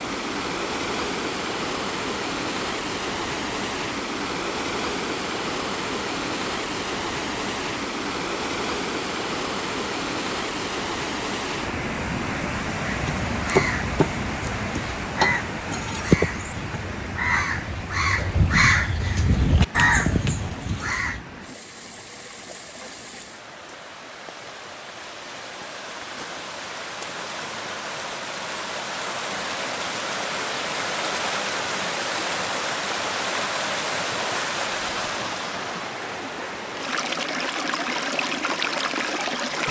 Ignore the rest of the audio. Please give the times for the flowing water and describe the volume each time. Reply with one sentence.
You can hear the flowing water from 0.0 to 39.6 s, getting quieter then louder.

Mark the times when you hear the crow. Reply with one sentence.
The crow can be heard from 12.8 to 21.2 s.